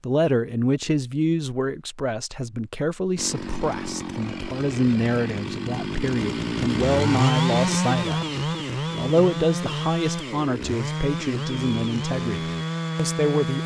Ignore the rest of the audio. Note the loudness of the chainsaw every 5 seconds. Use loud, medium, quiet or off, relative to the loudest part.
medium, loud, loud.